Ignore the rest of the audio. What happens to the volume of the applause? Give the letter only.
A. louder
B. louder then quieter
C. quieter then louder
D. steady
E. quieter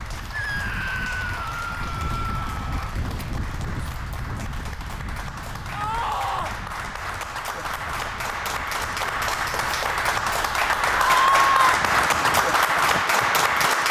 A.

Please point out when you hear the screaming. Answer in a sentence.
The screaming can be heard from 0.3 to 3.0 s, from 5.7 to 6.5 s and from 10.9 to 11.8 s.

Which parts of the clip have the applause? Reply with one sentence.
The applause can be heard from 0.0 to 13.8 s.